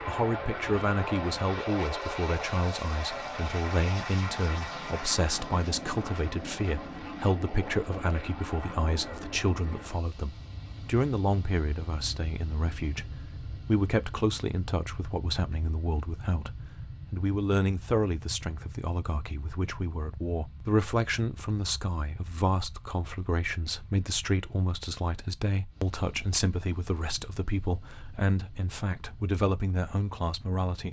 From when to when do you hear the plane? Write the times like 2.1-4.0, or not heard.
0.0-30.6.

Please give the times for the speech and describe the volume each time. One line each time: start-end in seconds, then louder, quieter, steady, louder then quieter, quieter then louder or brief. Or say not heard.
0.1-30.8 steady.